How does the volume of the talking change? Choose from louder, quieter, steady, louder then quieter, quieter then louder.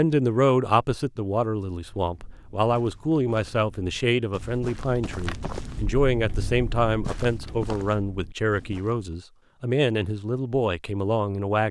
steady.